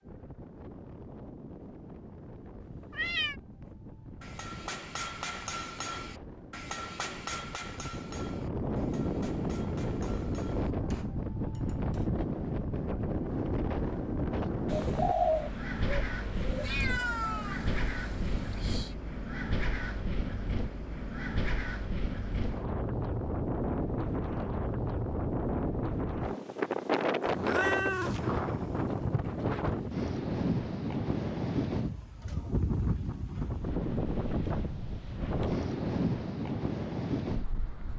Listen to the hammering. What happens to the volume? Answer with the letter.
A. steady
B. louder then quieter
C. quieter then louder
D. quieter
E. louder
D.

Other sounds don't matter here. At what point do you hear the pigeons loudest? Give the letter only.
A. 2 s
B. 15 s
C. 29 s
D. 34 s
B.